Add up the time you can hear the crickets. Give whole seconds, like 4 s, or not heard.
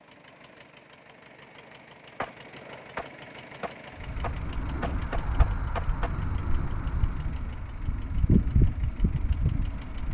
6 s.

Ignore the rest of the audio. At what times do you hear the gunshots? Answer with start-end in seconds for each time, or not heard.
2.2-6.1.